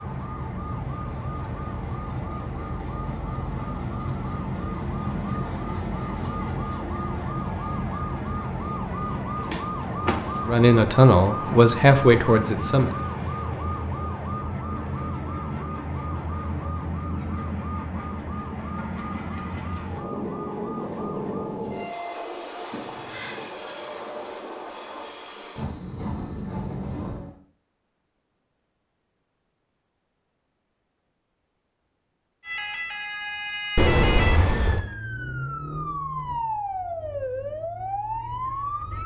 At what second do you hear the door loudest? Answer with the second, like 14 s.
34 s.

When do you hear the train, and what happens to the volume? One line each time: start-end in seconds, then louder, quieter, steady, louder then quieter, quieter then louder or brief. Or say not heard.
0.0-27.4 steady.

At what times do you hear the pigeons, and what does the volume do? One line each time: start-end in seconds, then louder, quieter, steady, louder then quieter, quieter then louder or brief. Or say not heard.
not heard.